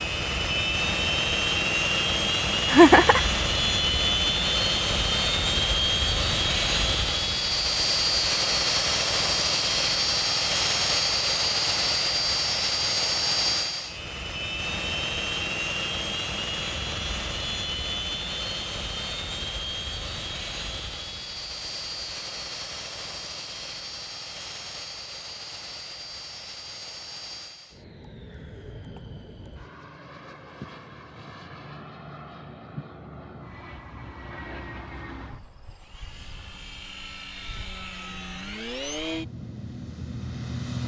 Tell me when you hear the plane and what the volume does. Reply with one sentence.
You can hear the plane from 0.0 to 40.8 s, getting quieter.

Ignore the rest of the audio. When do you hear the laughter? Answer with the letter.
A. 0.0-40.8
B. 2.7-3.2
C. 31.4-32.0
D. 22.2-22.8
B.